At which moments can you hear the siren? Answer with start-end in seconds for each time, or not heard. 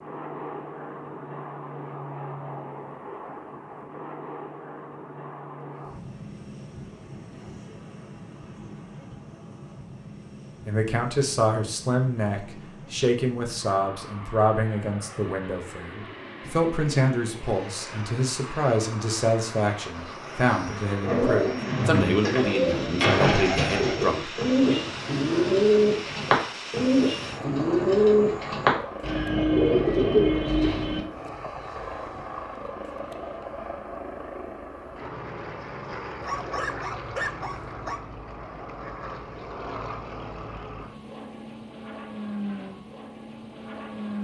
not heard.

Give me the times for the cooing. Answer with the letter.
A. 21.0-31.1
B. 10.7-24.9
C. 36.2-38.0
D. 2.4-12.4
A.